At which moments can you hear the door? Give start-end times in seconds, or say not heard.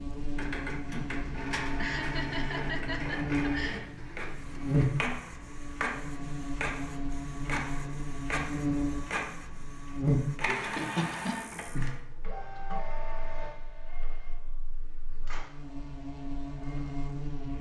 not heard.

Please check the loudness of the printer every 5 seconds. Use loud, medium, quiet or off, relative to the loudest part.
loud, loud, loud, quiet.